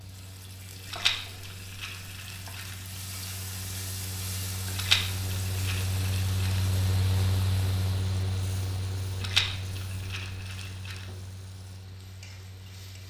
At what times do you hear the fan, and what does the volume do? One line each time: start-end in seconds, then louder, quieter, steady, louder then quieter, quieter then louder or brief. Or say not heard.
0.0-13.0 louder then quieter.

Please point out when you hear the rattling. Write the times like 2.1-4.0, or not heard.
0.9-2.8, 4.8-6.6, 9.2-11.1.